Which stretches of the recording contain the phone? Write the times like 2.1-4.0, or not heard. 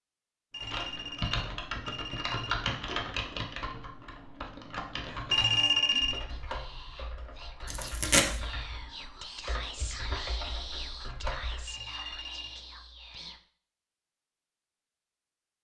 0.5-2.5, 5.3-6.2, 11.7-12.6.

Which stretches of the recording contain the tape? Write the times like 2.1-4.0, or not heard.
7.7-8.3.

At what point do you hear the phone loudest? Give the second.
6 s.